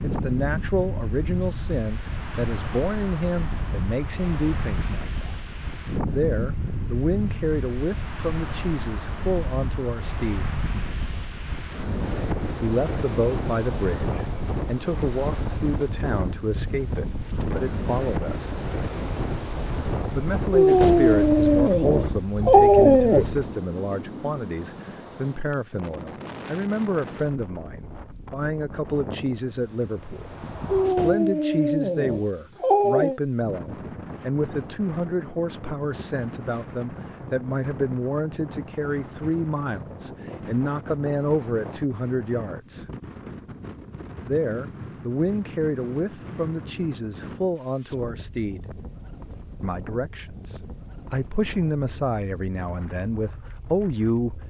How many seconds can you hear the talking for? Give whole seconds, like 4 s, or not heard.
48 s.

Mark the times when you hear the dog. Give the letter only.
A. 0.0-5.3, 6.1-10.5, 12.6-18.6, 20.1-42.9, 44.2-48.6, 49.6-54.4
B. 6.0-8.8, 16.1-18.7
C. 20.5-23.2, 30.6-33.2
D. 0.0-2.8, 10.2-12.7
C.